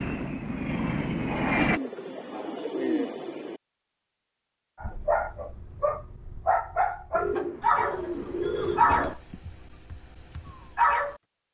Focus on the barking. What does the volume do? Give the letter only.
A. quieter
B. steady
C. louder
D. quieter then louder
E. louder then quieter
E.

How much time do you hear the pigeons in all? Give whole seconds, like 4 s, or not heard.
4 s.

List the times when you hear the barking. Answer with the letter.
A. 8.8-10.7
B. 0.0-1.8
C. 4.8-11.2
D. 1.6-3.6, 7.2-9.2
C.